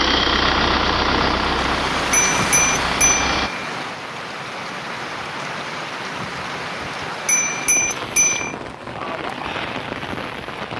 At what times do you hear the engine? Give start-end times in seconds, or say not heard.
0.0-3.5.